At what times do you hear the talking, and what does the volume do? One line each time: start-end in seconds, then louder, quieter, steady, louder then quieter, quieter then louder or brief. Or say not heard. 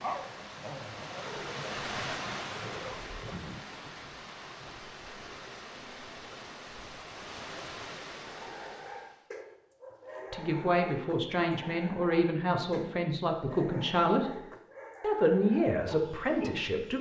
10.3-14.4 steady
15.0-16.9 brief.